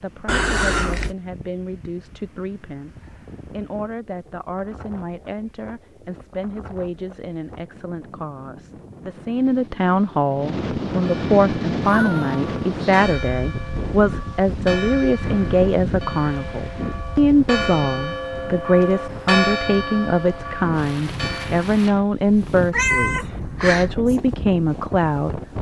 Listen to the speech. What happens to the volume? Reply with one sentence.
The volume of the speech goes up.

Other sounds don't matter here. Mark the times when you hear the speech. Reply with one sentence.
The speech can be heard from 0.0 to 25.4 s.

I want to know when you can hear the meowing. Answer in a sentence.
The meowing can be heard from 0.2 to 1.1 s, from 11.8 to 13.1 s and from 22.7 to 23.9 s.